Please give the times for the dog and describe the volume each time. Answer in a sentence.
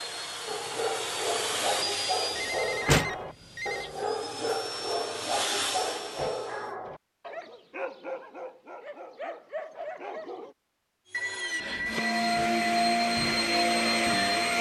The dog can be heard from 0.5 to 10.6 s, getting quieter.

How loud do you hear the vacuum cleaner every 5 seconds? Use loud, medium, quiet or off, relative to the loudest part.
medium, medium, loud.